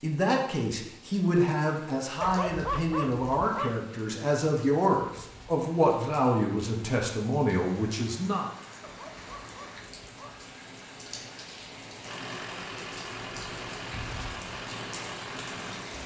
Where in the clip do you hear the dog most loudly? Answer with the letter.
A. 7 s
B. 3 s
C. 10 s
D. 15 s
B.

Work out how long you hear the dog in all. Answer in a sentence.
The dog can be heard for 3 seconds in total.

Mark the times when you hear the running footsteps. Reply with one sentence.
The running footsteps can't be heard in this clip.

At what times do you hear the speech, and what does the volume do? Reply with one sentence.
The speech can be heard from 0.0 to 8.4 s, at a steady volume.